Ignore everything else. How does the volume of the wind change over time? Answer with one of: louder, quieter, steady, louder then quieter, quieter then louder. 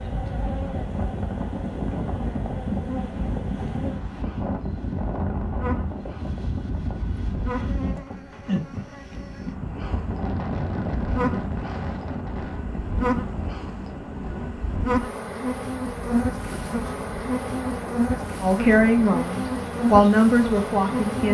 quieter.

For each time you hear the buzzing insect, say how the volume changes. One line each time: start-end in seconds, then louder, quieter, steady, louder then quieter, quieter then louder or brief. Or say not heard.
0.0-21.2 louder.